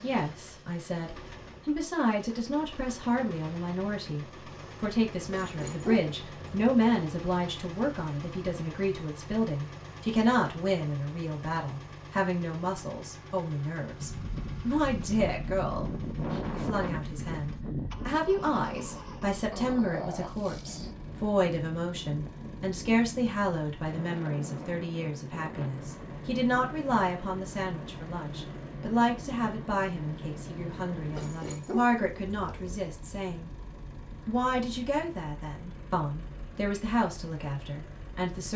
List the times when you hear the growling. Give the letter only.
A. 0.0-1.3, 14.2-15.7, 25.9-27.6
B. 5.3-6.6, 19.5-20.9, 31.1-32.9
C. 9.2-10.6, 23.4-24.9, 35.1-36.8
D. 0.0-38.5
B.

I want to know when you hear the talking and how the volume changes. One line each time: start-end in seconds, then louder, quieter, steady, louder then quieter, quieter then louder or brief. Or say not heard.
0.0-38.5 steady.